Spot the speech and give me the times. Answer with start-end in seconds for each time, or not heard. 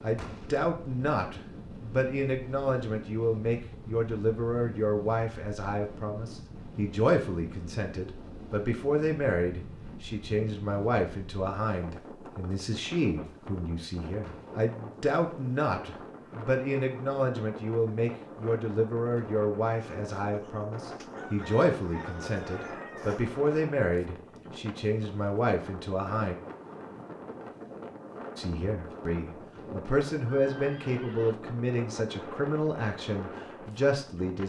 0.0-26.4, 28.4-34.4.